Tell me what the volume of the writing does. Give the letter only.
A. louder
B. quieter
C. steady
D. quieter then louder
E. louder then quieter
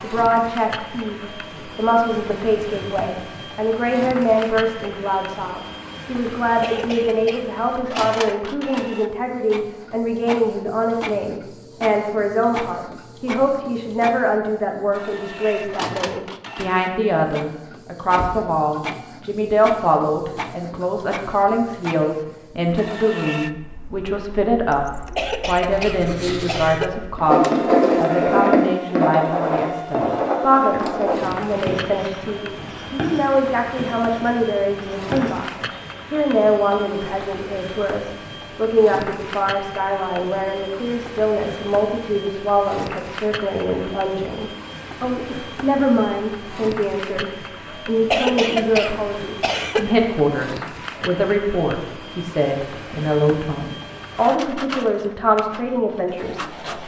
B.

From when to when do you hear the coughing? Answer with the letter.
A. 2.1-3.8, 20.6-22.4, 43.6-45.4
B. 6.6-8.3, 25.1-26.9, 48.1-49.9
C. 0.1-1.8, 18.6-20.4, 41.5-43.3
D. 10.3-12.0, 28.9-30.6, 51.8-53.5
B.